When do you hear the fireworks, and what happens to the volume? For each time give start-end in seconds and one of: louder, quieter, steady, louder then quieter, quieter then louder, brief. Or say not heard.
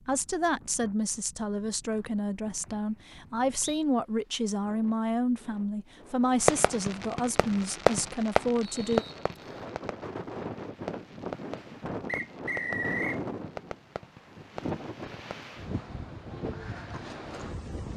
6.4-15.3 quieter.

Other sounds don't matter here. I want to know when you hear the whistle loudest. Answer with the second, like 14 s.
13 s.